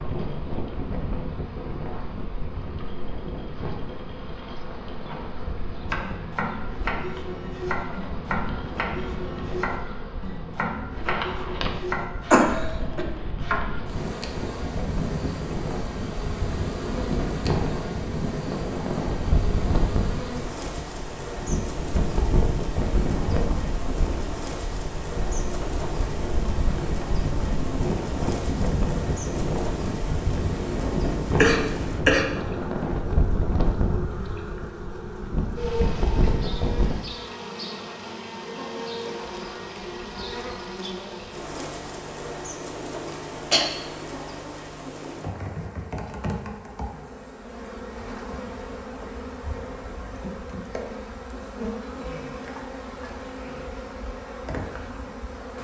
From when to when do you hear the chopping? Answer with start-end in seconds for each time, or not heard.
5.9-13.6.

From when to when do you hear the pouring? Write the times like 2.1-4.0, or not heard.
not heard.